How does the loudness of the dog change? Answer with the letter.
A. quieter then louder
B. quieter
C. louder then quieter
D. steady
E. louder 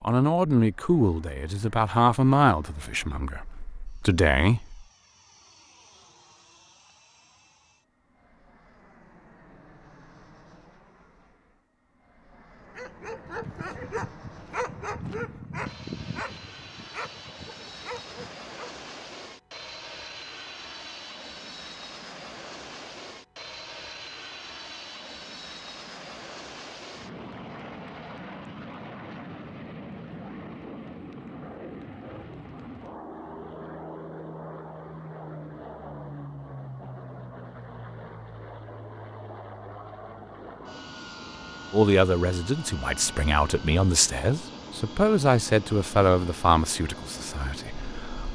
B.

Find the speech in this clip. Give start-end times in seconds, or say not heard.
0.0-4.8, 41.7-48.3.